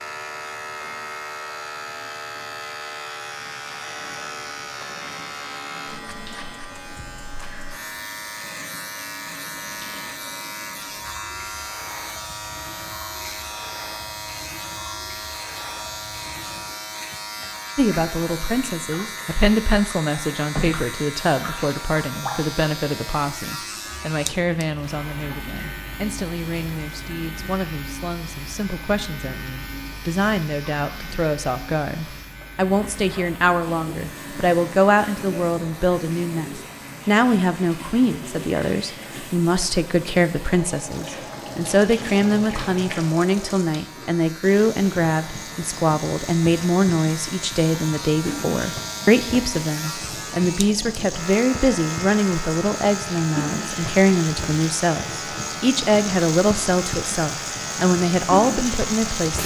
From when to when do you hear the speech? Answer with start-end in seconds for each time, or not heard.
17.8-59.4.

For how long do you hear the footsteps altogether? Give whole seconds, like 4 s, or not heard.
not heard.